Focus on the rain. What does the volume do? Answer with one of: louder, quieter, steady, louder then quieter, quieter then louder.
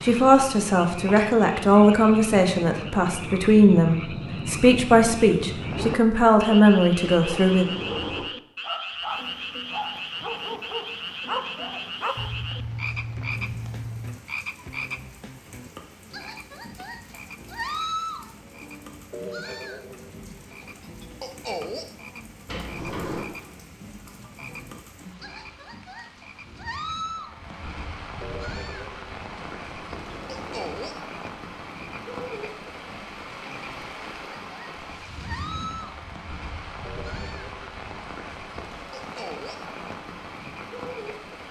louder.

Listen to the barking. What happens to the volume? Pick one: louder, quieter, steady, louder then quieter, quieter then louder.
steady.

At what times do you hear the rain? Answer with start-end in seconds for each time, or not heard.
9.0-41.4.